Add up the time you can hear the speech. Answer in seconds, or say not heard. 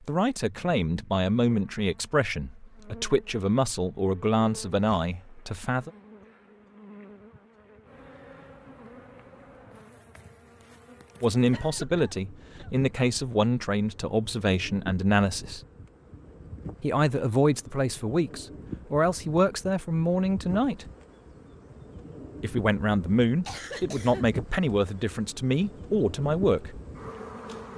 19 s.